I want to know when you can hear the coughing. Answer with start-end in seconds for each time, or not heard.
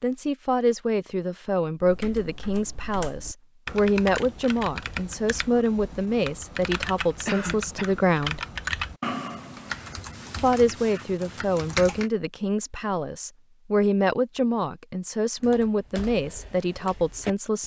7.2-8.0.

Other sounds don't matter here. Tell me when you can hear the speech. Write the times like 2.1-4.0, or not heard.
0.0-8.4, 10.4-17.6.